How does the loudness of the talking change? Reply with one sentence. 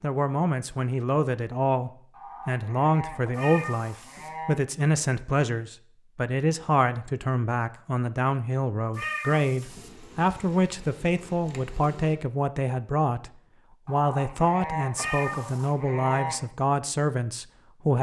The volume of the talking stays about the same.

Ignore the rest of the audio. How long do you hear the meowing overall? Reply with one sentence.
The meowing can be heard for 3 seconds in total.